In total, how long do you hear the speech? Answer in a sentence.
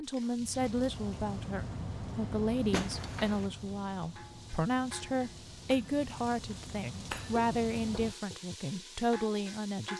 The speech can be heard for 10 seconds in total.